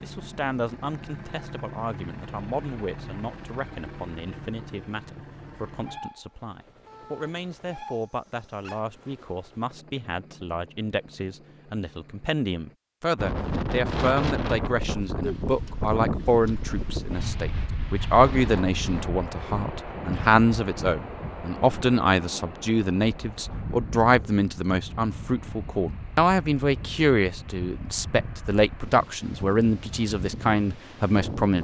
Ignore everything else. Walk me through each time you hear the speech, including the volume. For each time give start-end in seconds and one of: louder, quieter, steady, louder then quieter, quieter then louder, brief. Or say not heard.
0.0-31.6 louder.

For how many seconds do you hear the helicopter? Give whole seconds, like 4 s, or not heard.
13 s.